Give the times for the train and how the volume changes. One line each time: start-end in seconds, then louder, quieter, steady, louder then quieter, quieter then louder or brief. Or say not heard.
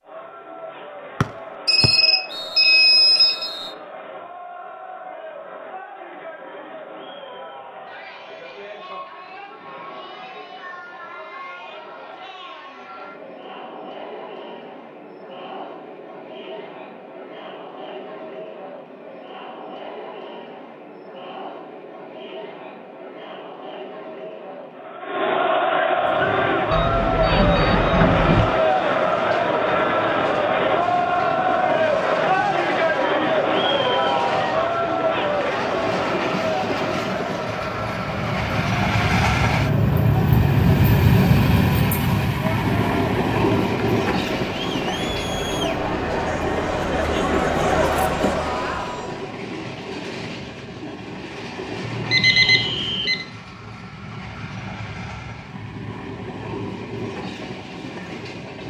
25.9-58.6 louder then quieter.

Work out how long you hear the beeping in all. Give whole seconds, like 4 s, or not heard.
5 s.